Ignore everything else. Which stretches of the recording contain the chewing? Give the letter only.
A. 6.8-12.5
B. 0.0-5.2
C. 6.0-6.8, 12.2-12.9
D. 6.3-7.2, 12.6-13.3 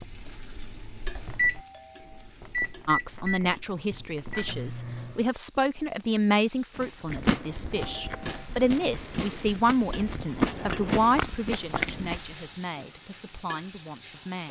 A.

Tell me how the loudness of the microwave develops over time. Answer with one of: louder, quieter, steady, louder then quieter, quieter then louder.
louder then quieter.